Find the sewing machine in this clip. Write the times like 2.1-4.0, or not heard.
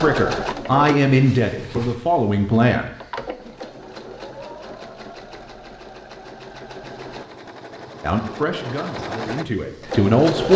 0.0-10.5.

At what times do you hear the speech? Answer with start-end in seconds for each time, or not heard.
0.0-2.9, 8.0-10.5.